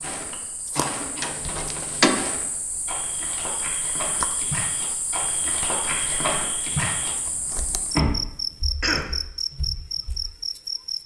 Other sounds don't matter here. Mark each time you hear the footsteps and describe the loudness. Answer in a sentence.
The footsteps can be heard from 0.0 to 10.2 s, getting louder then quieter.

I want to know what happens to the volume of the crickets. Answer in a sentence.
The loudness of the crickets goes up.